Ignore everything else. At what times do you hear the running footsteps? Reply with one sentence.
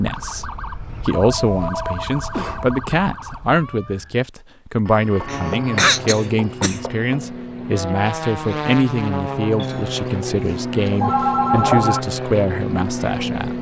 The running footsteps can't be heard in this clip.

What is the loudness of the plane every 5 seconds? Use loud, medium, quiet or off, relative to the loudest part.
off, loud, loud.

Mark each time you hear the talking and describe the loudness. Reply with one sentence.
The talking can be heard from 0.0 to 13.5 s, at a steady volume.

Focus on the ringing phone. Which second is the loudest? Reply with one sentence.
The volume of the ringing phone peaks at 12 seconds.